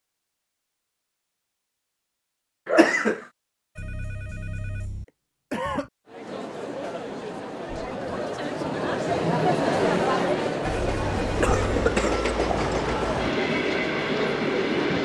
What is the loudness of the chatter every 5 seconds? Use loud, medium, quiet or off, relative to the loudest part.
off, loud, loud.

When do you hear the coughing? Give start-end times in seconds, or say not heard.
2.6-3.2, 5.5-5.9, 11.2-12.2.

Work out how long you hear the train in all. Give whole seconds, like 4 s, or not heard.
4 s.